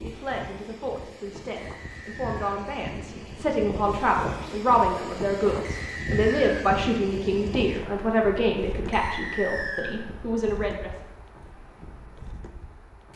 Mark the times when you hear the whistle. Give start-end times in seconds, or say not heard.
1.6-2.6, 5.7-6.7, 8.9-9.9.